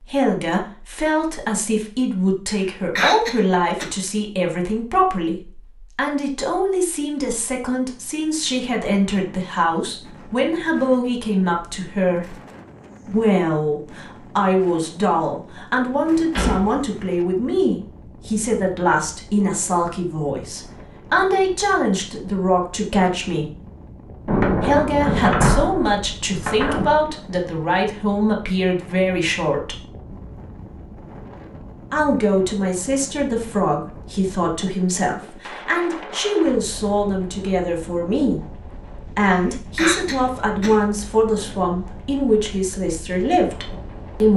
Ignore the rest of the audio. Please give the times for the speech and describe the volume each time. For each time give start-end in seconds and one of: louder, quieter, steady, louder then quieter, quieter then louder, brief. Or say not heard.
0.0-12.3 steady
13.1-23.6 steady
24.6-29.8 steady
31.9-44.3 steady.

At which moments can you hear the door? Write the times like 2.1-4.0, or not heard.
16.3-16.8, 24.2-26.9.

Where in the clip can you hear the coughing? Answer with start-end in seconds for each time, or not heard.
2.5-3.9, 39.2-40.9.